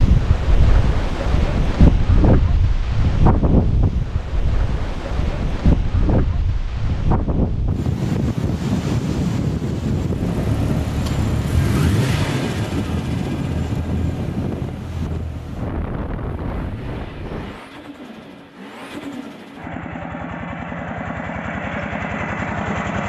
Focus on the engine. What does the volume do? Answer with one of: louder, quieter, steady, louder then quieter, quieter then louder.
quieter then louder.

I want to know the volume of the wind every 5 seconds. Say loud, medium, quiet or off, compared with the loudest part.
loud, loud, loud, medium, off.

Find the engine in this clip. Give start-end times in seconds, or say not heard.
10.0-23.0.